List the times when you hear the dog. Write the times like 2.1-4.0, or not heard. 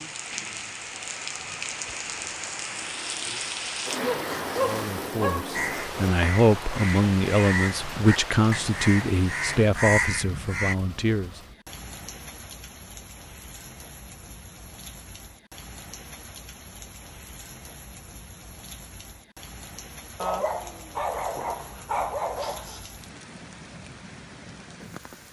4.0-5.5, 20.1-22.9.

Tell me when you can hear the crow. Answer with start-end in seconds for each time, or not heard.
5.5-10.8.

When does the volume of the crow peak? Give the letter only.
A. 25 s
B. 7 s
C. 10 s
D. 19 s
C.